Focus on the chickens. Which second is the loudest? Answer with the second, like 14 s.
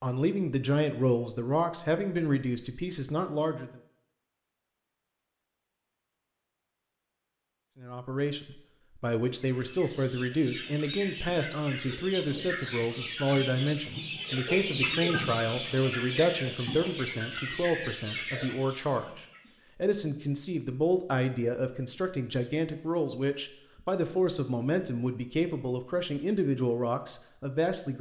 15 s.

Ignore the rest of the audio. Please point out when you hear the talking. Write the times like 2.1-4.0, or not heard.
0.0-3.8, 7.8-27.9.